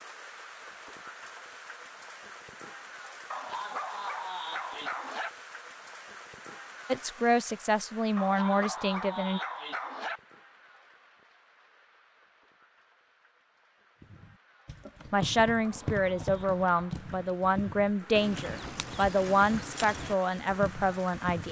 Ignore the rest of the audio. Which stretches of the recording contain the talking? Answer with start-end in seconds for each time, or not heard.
6.9-9.4, 15.1-21.4.